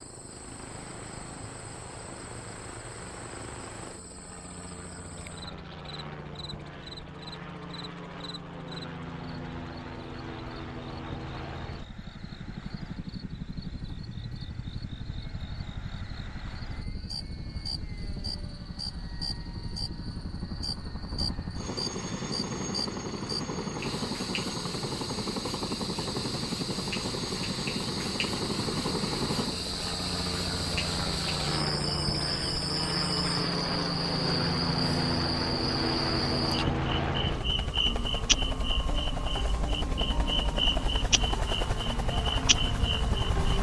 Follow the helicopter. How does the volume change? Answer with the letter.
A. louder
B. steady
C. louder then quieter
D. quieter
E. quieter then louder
A.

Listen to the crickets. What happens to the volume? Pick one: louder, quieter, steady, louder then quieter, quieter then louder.
louder.